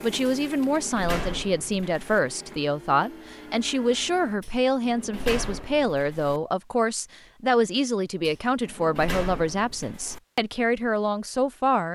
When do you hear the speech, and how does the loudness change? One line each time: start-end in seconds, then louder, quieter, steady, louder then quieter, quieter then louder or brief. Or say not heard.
0.0-11.9 steady.